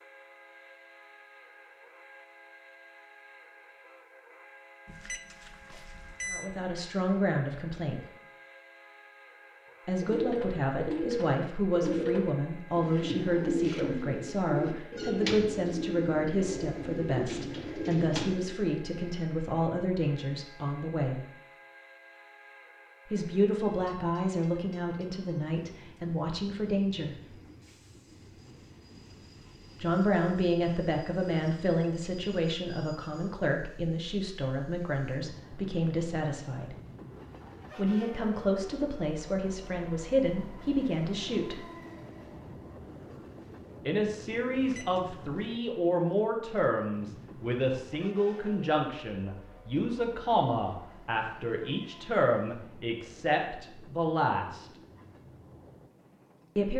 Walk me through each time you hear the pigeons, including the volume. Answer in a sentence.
You can hear the pigeons from 10.0 to 18.8 s, at a steady volume.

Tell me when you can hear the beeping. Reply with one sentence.
The beeping can be heard from 4.8 to 6.5 s and from 44.5 to 45.5 s.